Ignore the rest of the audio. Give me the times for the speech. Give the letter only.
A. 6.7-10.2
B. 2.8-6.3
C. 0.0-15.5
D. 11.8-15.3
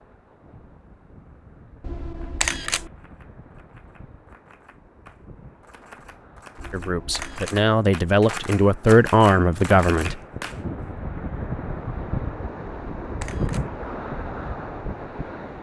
A.